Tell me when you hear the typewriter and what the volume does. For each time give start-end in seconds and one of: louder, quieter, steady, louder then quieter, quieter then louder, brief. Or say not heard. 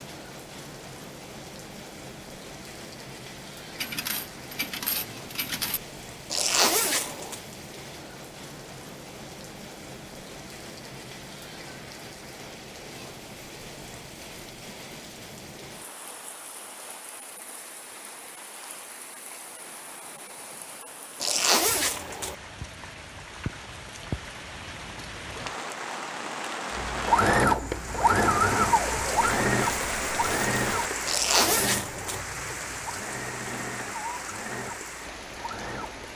not heard.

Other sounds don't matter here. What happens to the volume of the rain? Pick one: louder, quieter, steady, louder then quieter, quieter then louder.
louder.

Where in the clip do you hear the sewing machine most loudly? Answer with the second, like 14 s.
28 s.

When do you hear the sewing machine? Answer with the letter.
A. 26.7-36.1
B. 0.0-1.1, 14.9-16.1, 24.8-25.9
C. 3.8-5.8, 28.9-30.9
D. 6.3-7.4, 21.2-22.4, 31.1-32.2
A.